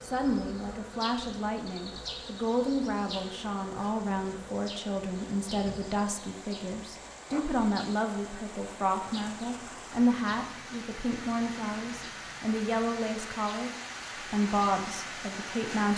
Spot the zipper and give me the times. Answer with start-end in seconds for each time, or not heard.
not heard.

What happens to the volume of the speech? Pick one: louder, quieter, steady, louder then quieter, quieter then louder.
steady.